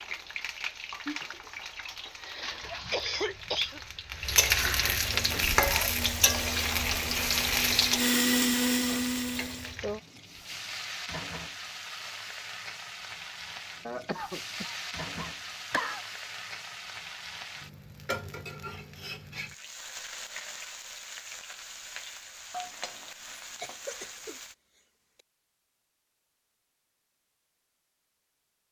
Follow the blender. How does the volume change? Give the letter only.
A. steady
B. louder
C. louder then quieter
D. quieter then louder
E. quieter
B.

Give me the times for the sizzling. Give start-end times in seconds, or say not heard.
0.0-24.6.